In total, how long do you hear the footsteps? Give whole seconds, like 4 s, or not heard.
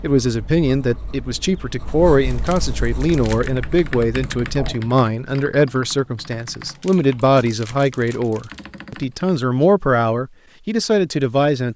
not heard.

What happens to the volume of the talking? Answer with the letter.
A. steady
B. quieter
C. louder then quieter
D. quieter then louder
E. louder
A.